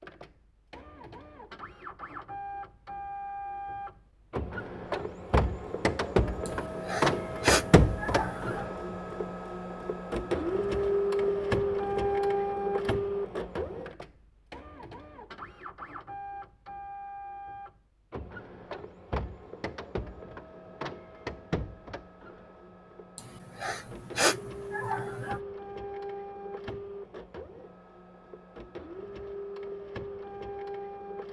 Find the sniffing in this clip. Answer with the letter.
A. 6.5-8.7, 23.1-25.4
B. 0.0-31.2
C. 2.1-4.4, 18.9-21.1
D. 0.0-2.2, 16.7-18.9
A.